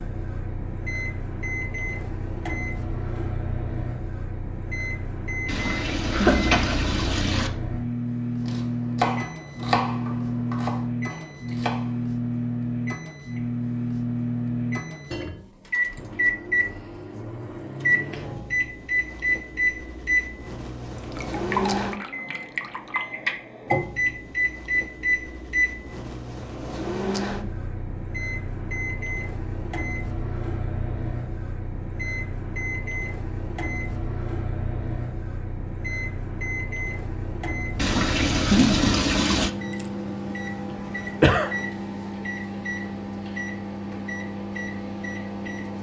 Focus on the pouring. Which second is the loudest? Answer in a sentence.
The loudest moment of the pouring is at 39 seconds.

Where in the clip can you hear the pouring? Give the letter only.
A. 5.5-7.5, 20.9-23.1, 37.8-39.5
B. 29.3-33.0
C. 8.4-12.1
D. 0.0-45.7
A.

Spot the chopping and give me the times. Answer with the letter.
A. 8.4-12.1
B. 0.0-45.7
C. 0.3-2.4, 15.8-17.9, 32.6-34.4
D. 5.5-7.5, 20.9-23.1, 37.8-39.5
A.